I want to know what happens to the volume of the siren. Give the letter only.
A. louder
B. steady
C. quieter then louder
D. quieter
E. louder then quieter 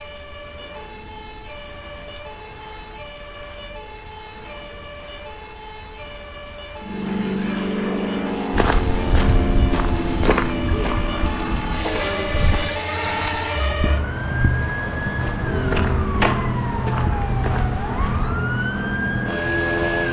A.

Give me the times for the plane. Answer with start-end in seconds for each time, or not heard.
6.8-20.0.